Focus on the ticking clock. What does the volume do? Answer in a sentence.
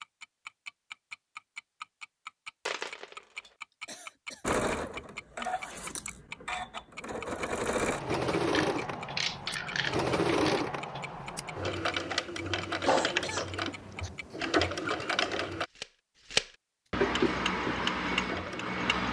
The volume of the ticking clock goes down, then up.